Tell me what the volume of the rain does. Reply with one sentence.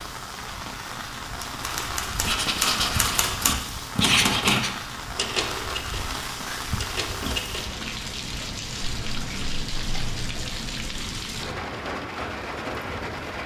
The loudness of the rain stays about the same.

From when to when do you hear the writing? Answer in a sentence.
You can hear the writing from 2.2 to 3.3 s, from 4.0 to 4.7 s and from 8.8 to 11.2 s.